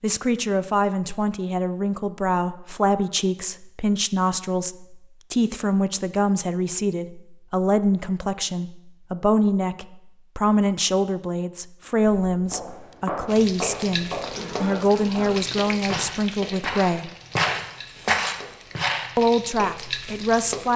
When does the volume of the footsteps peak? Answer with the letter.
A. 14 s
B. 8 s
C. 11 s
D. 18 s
D.